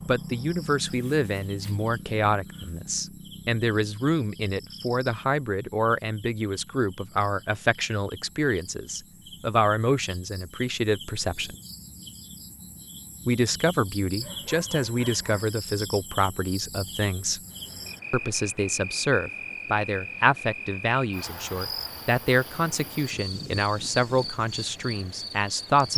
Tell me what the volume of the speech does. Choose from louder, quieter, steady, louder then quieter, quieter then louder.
steady.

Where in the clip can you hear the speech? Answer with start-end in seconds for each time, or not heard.
0.1-11.6, 13.2-17.4, 18.1-25.9.